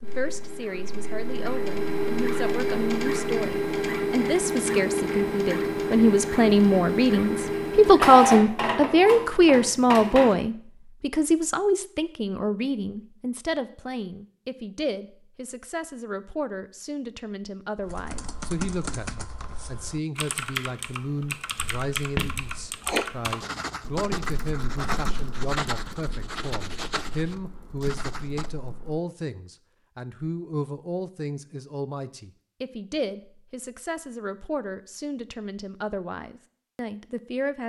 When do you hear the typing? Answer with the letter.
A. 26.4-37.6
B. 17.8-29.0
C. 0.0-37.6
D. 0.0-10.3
B.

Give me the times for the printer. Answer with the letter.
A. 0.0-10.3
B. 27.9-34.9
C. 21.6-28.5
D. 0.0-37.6
A.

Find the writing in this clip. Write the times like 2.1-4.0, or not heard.
21.6-28.5.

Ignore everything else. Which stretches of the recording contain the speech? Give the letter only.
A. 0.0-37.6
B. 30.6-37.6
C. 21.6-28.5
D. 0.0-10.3
A.